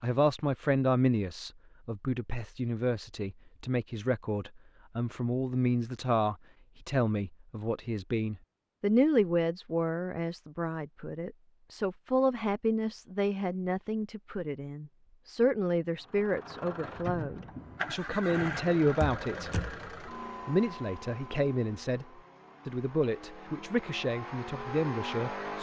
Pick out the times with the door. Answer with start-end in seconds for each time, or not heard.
19.0-19.8.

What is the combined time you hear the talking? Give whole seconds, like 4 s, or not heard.
24 s.